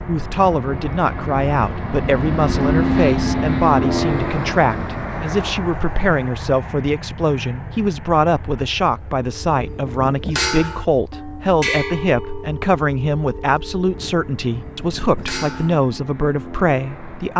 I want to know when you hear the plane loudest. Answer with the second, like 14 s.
3 s.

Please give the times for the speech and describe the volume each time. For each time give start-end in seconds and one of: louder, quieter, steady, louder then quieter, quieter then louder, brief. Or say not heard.
0.1-17.3 steady.